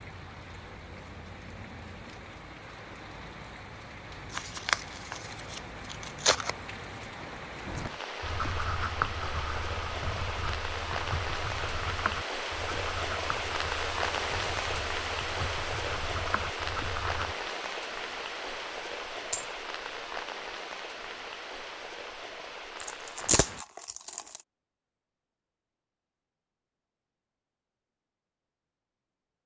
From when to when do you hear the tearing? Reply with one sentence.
You can hear the tearing from 4.3 to 6.5 s and from 22.8 to 24.4 s.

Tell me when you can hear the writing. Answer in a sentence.
The writing can be heard from 7.7 to 17.4 s.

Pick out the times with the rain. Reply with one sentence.
The rain can be heard from 0.0 to 23.6 s.